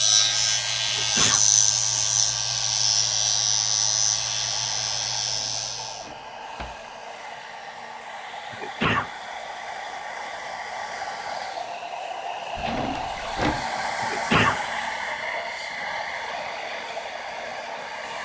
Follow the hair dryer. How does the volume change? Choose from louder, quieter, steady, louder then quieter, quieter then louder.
louder.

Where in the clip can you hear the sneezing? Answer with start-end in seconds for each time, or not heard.
0.8-1.4, 8.5-9.1, 14.0-14.6.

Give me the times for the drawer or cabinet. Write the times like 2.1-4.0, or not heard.
5.2-6.8, 12.6-13.7.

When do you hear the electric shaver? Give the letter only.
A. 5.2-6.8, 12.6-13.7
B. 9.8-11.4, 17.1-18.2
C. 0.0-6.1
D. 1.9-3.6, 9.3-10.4
C.